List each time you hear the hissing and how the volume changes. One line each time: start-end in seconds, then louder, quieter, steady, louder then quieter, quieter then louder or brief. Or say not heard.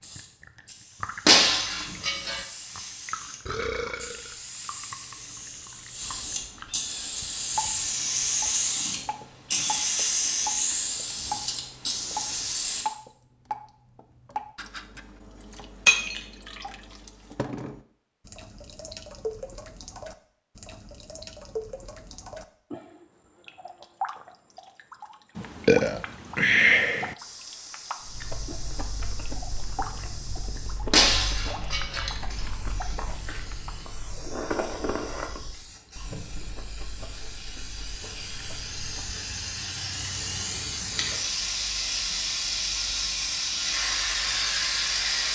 0.0-12.8 louder
27.1-45.3 louder.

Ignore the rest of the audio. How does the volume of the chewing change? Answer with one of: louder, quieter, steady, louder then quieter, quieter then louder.
louder then quieter.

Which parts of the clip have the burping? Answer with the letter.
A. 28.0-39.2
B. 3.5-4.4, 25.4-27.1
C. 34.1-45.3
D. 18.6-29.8
B.